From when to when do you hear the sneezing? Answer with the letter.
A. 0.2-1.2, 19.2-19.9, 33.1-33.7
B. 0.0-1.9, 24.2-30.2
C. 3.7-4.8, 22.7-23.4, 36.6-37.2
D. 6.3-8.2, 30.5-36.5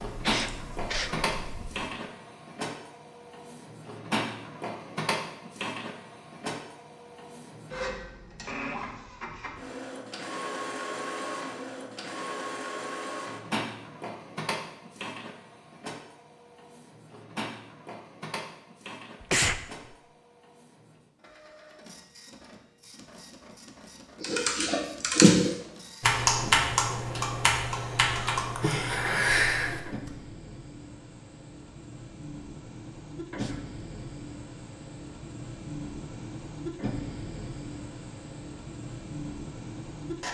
A.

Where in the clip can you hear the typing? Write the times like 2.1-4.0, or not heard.
0.0-1.9, 24.2-30.2.